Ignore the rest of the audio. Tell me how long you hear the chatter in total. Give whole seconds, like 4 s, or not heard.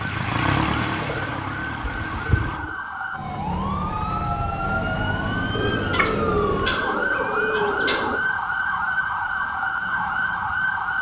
not heard.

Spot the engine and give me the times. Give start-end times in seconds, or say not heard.
0.0-2.6.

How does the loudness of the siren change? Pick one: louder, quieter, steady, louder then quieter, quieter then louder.
louder.